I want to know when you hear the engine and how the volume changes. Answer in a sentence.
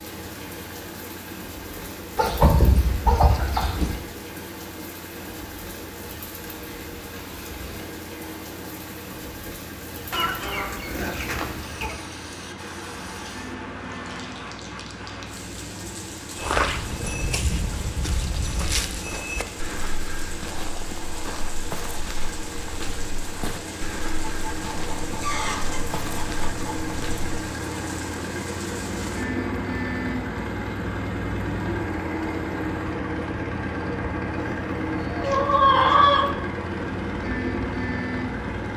The engine can be heard from 0.0 to 38.7 s, getting louder.